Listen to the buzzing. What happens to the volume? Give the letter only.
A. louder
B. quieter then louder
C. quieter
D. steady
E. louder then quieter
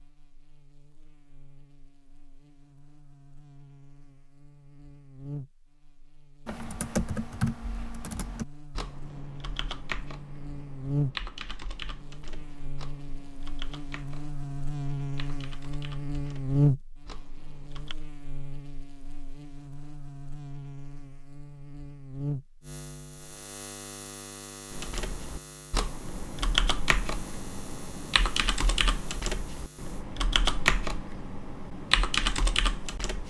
E.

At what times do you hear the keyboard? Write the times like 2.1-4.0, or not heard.
6.5-17.9, 24.7-33.2.